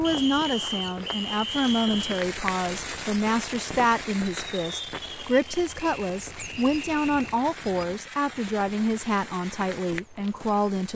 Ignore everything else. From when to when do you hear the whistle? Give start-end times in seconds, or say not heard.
0.0-2.2, 5.8-7.4.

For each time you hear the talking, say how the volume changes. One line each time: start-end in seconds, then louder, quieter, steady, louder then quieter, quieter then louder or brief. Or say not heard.
0.0-10.9 steady.